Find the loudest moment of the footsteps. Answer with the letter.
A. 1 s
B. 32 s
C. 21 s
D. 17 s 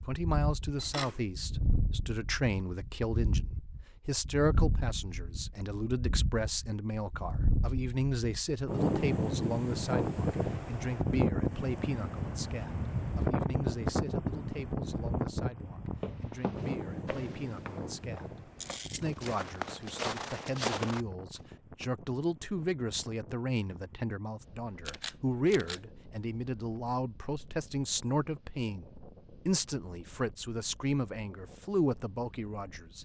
C.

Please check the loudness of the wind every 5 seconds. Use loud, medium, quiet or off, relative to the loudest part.
medium, loud, loud, medium, quiet, quiet, quiet.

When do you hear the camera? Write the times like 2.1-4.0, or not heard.
0.8-1.2, 18.6-19.4, 24.9-25.8.